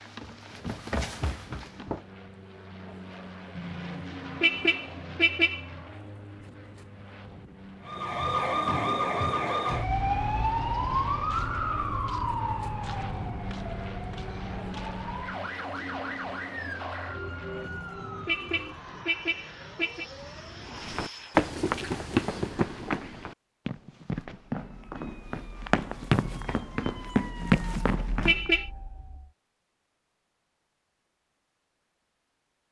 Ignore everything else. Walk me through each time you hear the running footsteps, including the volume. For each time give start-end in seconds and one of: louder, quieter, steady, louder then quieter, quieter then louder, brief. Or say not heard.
0.0-2.0 brief
20.8-28.4 quieter then louder.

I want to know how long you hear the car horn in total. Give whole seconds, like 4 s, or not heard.
6 s.